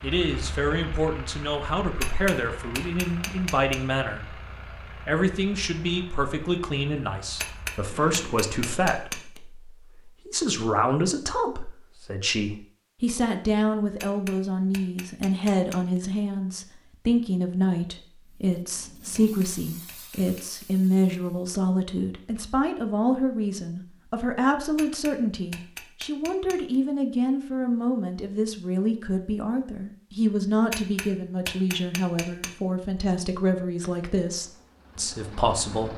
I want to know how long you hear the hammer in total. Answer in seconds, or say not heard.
11 s.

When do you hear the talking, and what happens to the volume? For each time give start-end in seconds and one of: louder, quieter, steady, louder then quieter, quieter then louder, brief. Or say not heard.
0.0-35.9 steady.